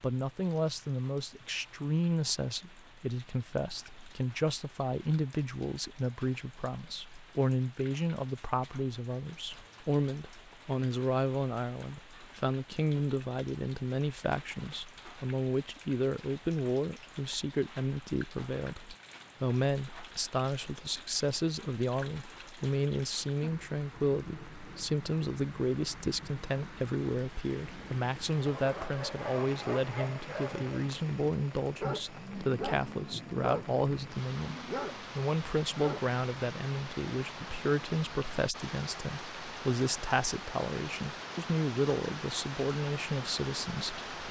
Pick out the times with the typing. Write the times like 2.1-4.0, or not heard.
not heard.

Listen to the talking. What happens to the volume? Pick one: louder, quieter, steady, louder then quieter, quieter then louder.
steady.